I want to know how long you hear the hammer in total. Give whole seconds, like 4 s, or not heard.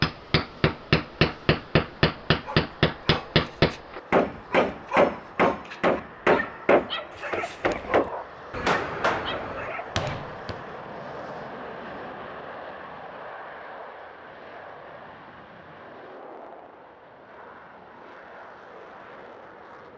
11 s.